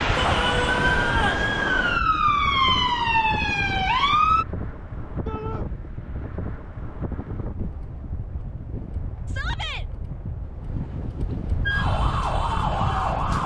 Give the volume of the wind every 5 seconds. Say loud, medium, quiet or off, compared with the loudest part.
loud, medium, loud.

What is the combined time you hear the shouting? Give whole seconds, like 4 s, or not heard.
2 s.